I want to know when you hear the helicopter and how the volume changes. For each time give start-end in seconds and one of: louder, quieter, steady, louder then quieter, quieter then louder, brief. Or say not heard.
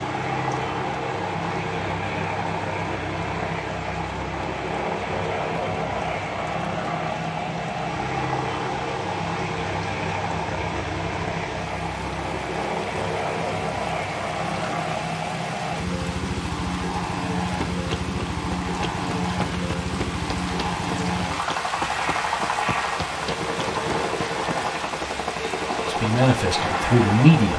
0.0-27.5 steady.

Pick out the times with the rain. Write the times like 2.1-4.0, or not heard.
0.0-27.5.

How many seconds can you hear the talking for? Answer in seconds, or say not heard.
2 s.